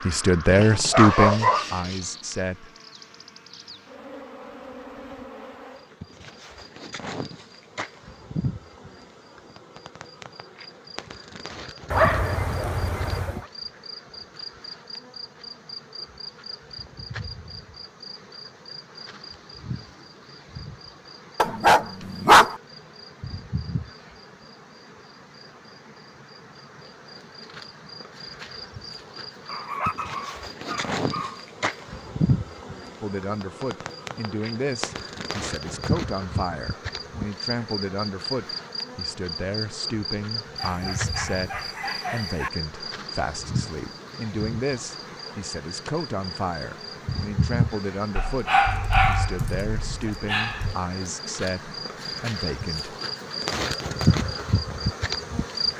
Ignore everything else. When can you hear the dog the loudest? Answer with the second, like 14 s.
22 s.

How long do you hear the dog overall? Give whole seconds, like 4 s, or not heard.
11 s.